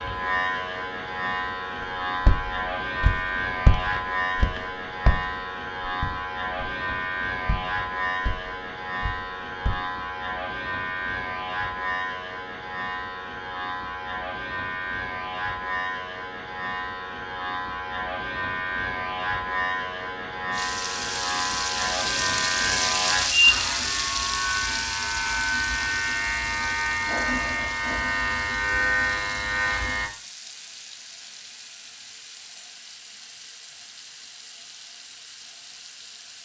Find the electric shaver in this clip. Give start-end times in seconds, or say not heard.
0.0-30.1.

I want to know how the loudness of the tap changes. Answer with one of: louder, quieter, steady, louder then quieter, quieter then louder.
quieter.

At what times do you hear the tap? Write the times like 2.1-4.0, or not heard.
20.5-36.4.